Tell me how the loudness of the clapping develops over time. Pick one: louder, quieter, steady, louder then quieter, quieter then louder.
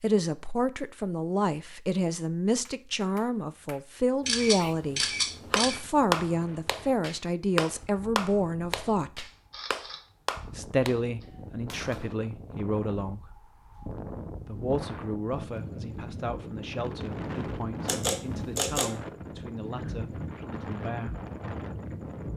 louder then quieter.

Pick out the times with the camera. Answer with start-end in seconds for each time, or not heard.
4.2-5.8, 9.3-10.2, 17.9-18.9.